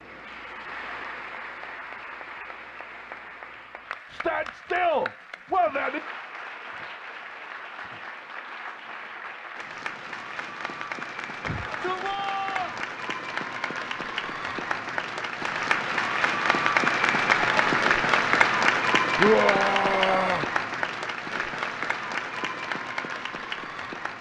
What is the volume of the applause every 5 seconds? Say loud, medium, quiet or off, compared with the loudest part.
quiet, quiet, medium, loud, medium.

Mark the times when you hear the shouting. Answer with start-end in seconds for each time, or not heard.
4.1-6.0, 11.4-12.8, 19.1-20.4.